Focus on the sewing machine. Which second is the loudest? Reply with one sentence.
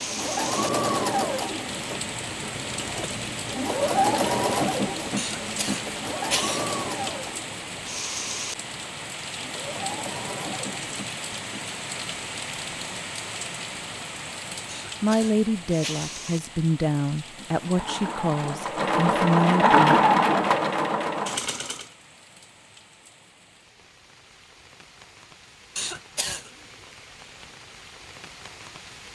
The loudest moment of the sewing machine is at 20 seconds.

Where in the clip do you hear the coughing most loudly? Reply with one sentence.
The volume of the coughing peaks at 6 seconds.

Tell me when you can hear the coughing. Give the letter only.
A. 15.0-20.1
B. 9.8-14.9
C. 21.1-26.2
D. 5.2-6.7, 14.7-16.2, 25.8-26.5
D.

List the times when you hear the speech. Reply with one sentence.
You can hear the speech from 15.0 to 20.1 s.